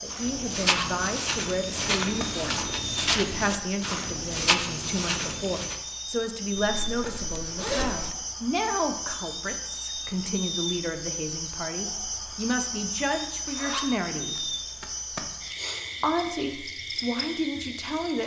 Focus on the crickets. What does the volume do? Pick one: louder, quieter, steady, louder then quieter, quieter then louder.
steady.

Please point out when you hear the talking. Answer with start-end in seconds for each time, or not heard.
0.0-14.5, 16.0-18.2.